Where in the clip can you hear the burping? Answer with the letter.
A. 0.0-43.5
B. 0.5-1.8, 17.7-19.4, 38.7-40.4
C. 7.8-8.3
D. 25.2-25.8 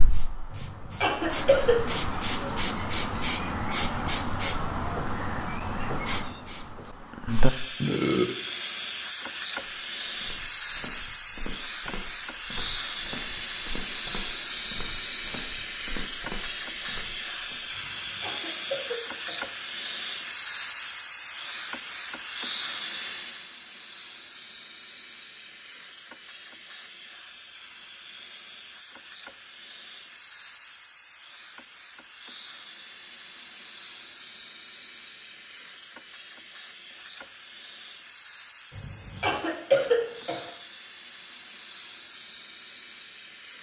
C.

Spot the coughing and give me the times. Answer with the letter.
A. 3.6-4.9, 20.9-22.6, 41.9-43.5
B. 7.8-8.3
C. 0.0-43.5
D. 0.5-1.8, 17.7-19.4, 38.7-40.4
D.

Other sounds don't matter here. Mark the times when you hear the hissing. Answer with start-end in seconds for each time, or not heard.
0.0-43.5.